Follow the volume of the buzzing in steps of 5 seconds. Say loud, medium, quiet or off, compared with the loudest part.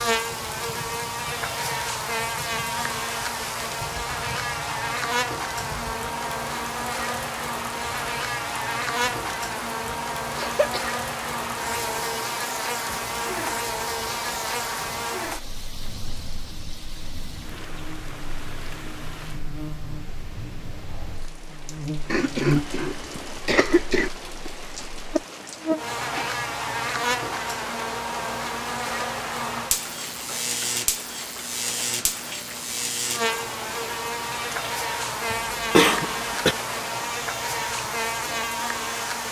loud, loud, loud, medium, loud, loud, loud, loud.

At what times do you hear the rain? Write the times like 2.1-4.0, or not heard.
0.0-39.2.